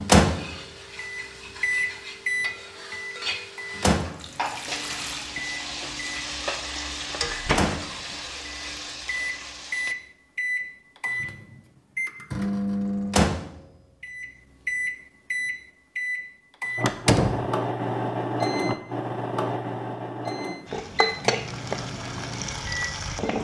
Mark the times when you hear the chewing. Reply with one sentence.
The chewing can't be heard in this clip.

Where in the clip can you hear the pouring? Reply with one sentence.
The pouring can be heard from 4.0 to 5.3 s.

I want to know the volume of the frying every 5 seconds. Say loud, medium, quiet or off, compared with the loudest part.
medium, loud, off, off, loud.